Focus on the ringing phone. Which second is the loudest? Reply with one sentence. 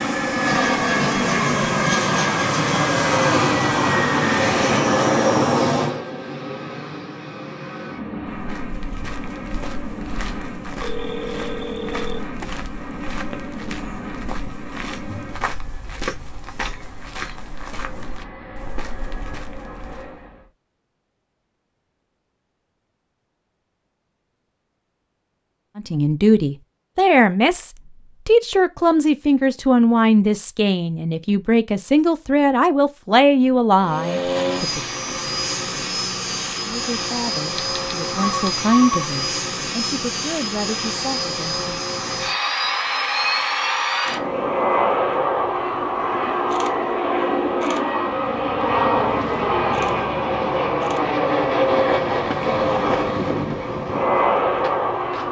The loudest moment of the ringing phone is at 39 seconds.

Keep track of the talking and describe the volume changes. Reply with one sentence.
The loudness of the talking goes down.